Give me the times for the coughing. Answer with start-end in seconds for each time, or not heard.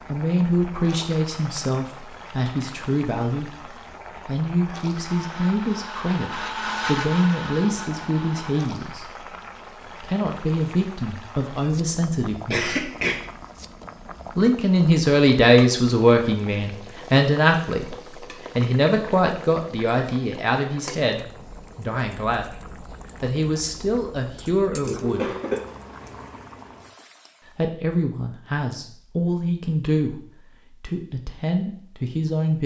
12.5-13.2, 24.8-25.6.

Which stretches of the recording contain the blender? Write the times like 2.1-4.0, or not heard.
5.0-8.6.